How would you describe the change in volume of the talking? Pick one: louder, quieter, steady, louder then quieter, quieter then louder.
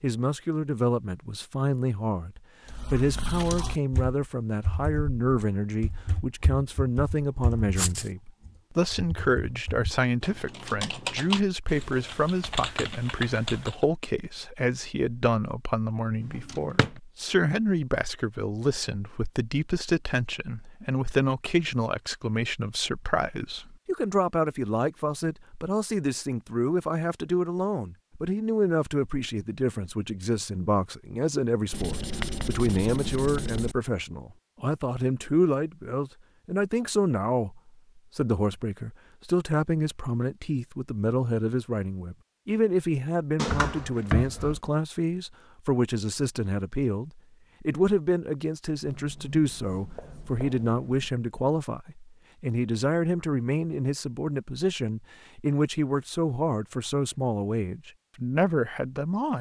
steady.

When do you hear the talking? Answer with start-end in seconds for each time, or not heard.
0.0-59.3.